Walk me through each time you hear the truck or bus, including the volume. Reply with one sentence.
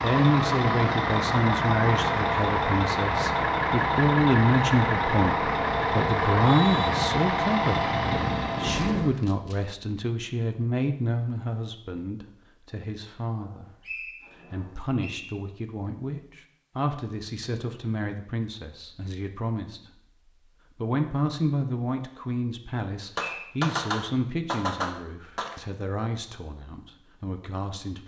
The truck or bus can be heard from 0.0 to 9.1 s, at a steady volume.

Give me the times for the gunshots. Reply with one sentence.
You can hear the gunshots from 8.7 to 9.6 s and from 23.1 to 25.6 s.